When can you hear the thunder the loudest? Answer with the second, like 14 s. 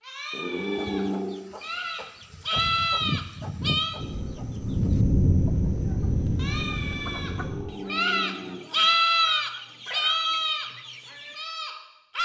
5 s.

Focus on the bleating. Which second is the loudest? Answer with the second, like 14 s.
9 s.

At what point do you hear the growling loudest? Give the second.
1 s.